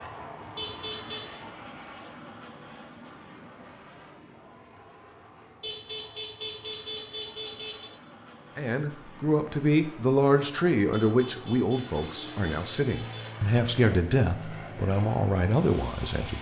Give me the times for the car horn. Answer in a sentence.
You can hear the car horn from 0.6 to 1.2 s, from 5.6 to 7.9 s and from 10.9 to 13.4 s.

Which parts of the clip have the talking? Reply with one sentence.
You can hear the talking from 8.6 to 16.3 s.